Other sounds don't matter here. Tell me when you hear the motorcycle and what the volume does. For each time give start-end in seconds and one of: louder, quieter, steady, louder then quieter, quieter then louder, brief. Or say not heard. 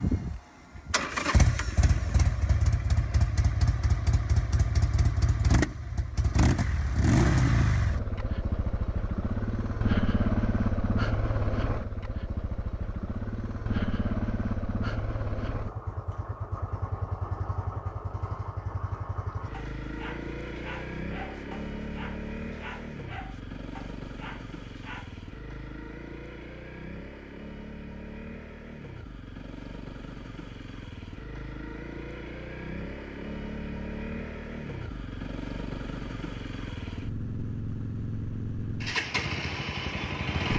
0.0-40.5 quieter then louder.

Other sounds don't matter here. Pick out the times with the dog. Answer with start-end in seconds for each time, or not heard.
19.5-25.2.